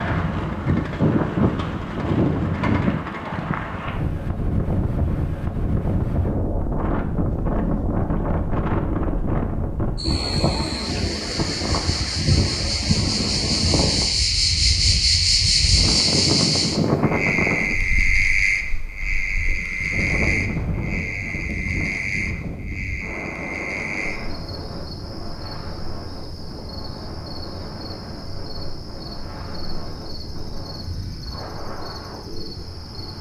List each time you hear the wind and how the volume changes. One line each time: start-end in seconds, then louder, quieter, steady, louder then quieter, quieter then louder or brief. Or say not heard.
0.0-33.1 quieter.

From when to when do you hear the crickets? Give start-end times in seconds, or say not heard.
9.9-33.1.